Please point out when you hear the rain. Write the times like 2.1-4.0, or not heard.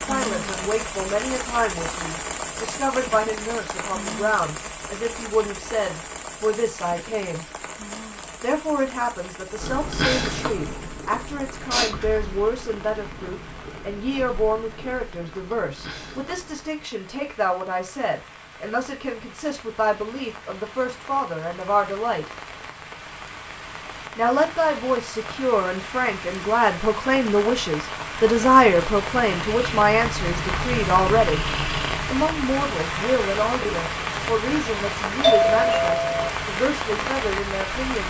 0.0-38.0.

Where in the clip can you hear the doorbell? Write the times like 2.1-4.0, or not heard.
35.2-36.3.